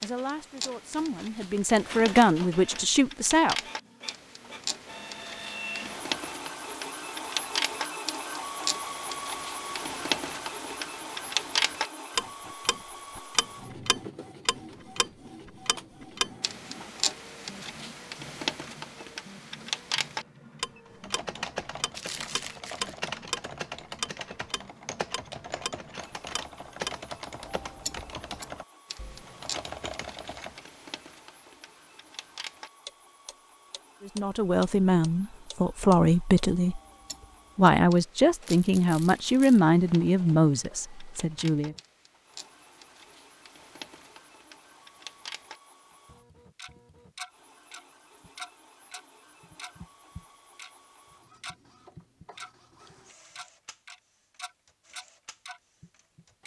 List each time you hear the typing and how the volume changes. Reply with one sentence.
The typing can be heard from 20.9 to 30.7 s, at a steady volume.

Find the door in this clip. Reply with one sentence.
You can't hear the door here.